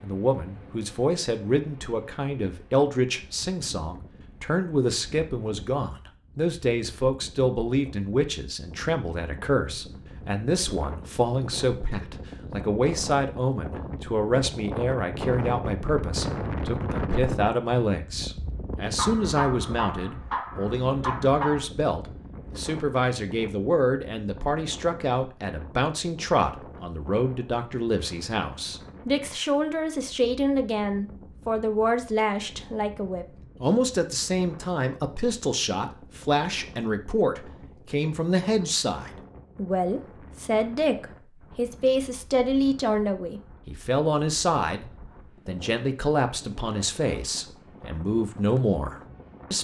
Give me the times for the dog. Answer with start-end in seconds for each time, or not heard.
18.9-21.6.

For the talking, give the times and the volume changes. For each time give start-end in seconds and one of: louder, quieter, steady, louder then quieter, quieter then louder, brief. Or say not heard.
0.0-44.9 steady
45.5-49.5 quieter then louder.